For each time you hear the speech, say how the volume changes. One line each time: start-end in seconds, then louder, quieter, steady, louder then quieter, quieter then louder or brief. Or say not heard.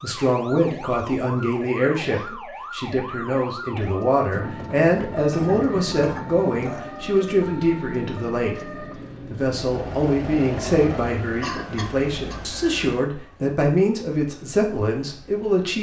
0.0-15.7 steady.